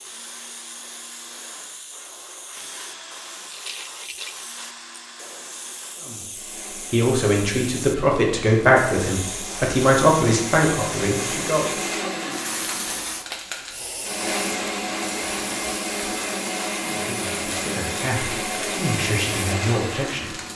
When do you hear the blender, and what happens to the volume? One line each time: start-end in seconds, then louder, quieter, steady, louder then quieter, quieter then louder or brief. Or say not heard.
0.0-20.5 louder.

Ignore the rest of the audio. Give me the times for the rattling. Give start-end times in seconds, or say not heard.
3.5-4.4.